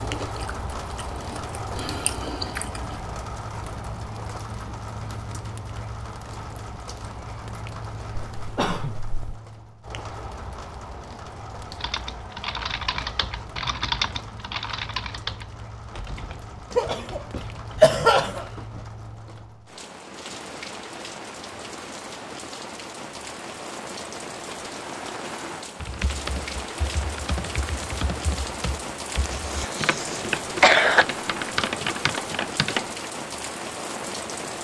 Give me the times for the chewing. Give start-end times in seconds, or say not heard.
0.0-3.0.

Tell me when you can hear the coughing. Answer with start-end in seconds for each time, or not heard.
8.3-9.4, 16.7-18.6, 29.2-31.1.